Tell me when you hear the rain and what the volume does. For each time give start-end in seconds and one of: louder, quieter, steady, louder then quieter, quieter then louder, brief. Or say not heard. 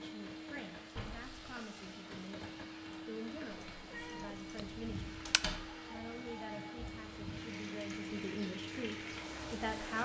0.0-9.9 louder.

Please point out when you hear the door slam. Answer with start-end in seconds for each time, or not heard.
0.9-1.6, 5.2-5.7.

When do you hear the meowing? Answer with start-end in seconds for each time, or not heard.
3.5-5.5.